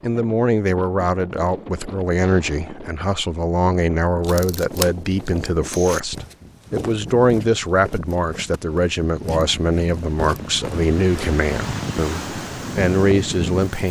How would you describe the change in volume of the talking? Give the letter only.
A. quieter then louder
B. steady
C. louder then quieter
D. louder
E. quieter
B.